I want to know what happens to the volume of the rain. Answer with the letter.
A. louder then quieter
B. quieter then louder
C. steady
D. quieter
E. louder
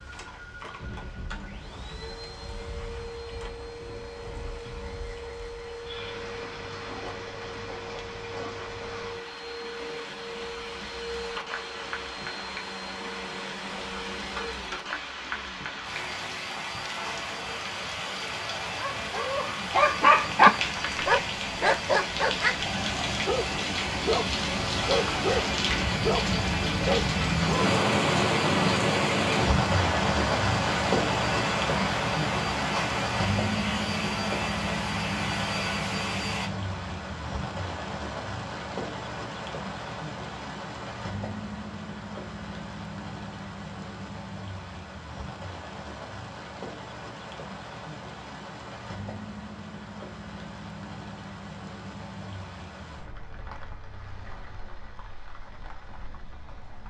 A.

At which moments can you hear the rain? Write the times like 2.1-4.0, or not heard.
0.0-56.8.